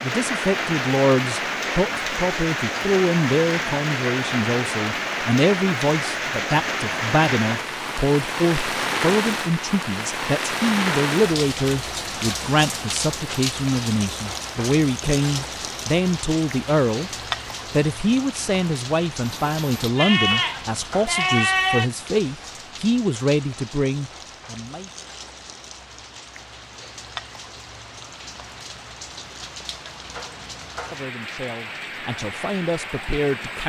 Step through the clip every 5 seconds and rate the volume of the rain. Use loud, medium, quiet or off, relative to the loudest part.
loud, loud, loud, medium, quiet, quiet, medium.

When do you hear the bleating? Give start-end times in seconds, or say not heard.
19.2-21.9.